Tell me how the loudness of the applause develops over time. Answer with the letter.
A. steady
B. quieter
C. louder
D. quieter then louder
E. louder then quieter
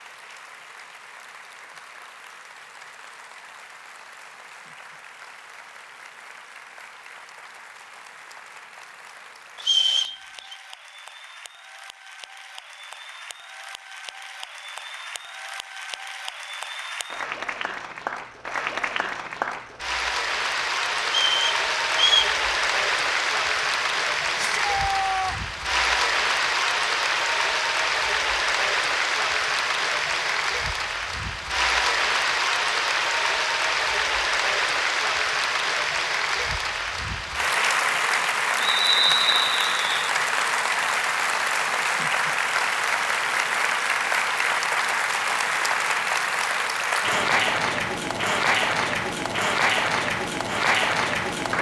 C.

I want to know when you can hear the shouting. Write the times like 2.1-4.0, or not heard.
24.4-25.4.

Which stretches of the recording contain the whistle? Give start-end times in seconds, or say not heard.
9.6-10.6, 21.1-22.4, 38.6-40.0.